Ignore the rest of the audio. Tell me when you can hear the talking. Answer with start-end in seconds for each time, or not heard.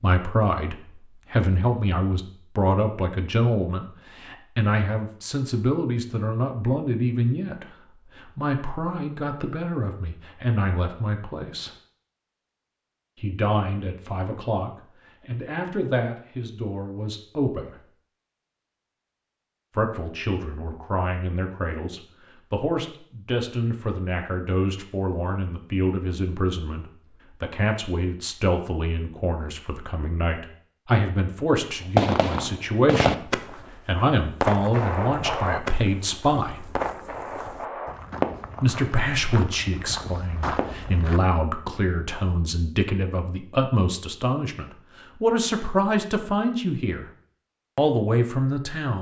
0.0-11.7, 13.2-17.8, 19.8-36.6, 38.6-47.0, 47.8-48.9.